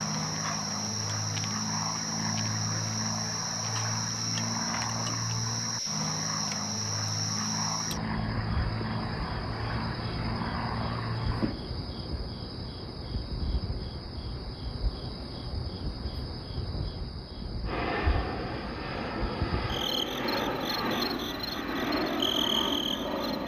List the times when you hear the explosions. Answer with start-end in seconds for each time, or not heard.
not heard.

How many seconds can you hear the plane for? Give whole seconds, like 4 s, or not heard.
17 s.